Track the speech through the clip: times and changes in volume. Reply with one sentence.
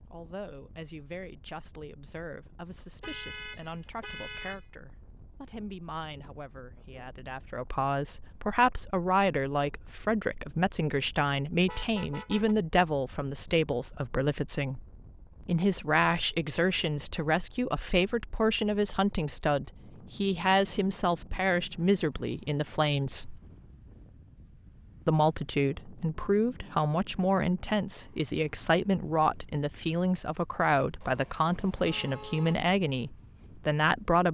You can hear the speech from 0.1 to 14.8 s, getting louder; from 15.4 to 23.4 s, at a steady volume; and from 25.1 to 34.2 s, at a steady volume.